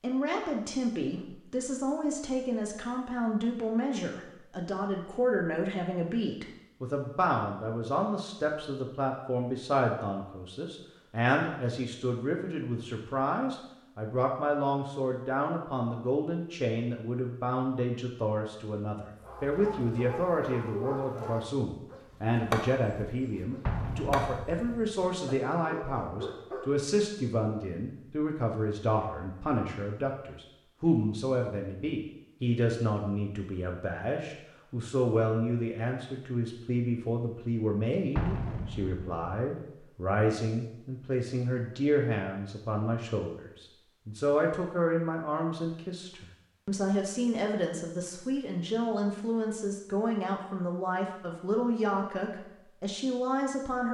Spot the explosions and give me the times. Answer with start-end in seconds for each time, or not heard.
23.6-24.9, 38.1-39.4.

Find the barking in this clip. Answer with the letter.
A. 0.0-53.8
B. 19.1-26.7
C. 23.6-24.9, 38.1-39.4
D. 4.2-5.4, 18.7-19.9
B.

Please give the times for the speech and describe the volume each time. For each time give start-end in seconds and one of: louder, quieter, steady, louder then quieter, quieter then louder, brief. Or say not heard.
0.0-53.8 steady.